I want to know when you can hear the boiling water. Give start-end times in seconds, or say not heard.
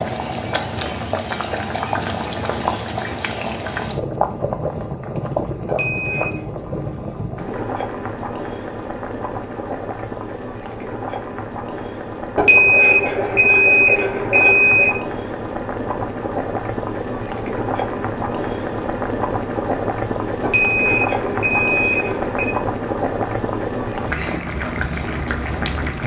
0.0-26.0.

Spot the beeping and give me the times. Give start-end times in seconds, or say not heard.
5.7-6.4, 12.3-14.9, 20.4-22.5.